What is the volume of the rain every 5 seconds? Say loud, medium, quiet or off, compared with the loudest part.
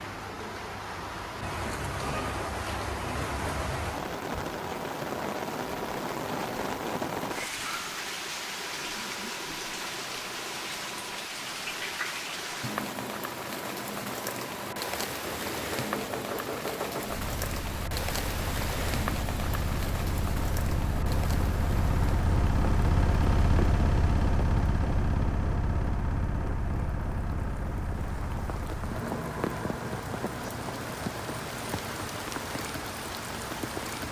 loud, loud, loud, loud, medium, medium, loud.